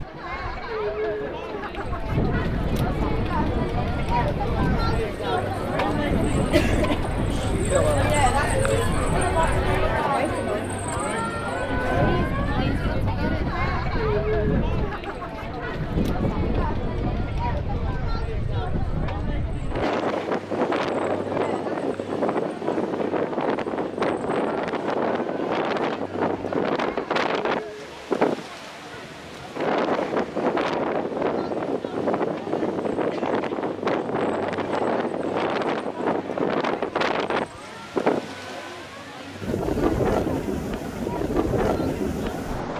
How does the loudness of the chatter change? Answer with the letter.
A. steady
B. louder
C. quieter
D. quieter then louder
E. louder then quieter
C.